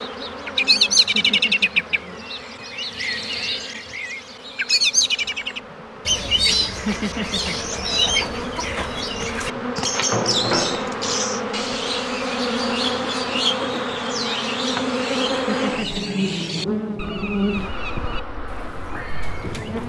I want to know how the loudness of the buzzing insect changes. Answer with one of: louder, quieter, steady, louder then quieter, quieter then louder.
louder.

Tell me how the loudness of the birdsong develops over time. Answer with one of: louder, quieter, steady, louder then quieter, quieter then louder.
quieter.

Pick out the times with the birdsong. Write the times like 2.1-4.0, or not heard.
0.0-19.8.